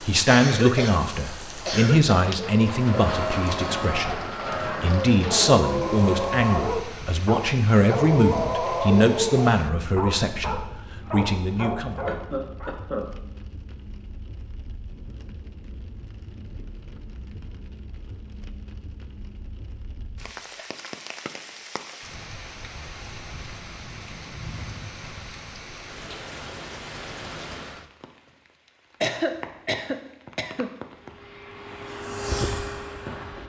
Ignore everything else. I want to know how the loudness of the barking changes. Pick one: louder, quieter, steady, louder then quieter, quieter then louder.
louder then quieter.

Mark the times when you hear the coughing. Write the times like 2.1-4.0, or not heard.
0.2-2.1, 12.1-13.1, 29.0-30.7.